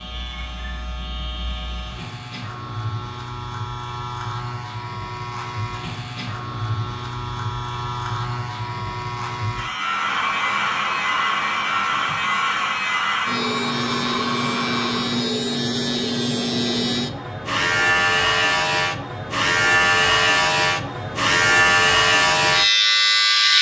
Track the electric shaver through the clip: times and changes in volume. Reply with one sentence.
You can hear the electric shaver from 0.0 to 23.5 s, getting louder.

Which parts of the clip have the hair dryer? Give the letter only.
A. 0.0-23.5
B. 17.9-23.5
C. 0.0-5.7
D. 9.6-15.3
D.